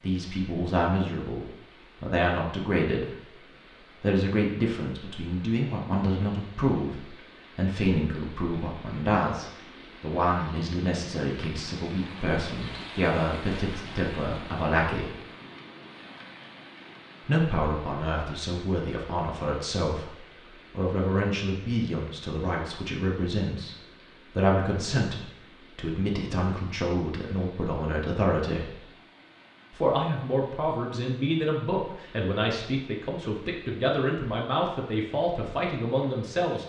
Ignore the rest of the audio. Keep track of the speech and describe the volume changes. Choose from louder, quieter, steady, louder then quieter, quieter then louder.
steady.